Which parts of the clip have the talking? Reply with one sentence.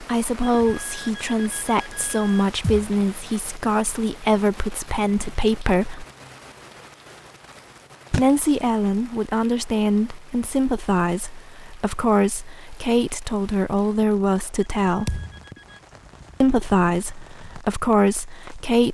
You can hear the talking from 0.0 to 6.0 s, from 8.1 to 15.2 s and from 16.4 to 18.8 s.